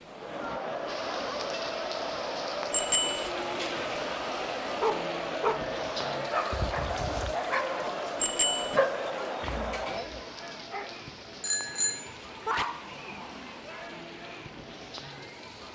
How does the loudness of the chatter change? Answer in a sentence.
The volume of the chatter goes down.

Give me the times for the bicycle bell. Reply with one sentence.
You can hear the bicycle bell from 2.7 to 3.3 s, from 8.2 to 8.8 s and from 11.4 to 12.6 s.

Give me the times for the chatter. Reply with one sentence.
You can hear the chatter from 0.0 to 15.7 s.